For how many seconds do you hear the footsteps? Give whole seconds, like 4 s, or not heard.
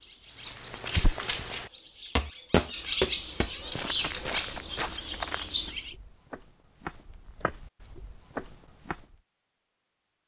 9 s.